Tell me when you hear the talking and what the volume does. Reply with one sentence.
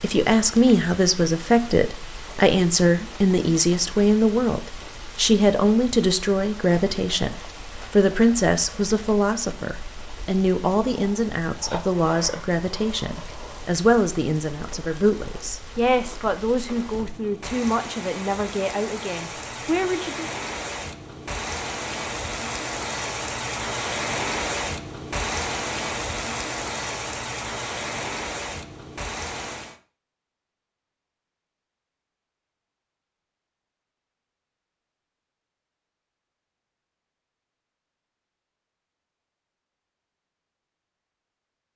You can hear the talking from 0.0 to 20.3 s, getting quieter.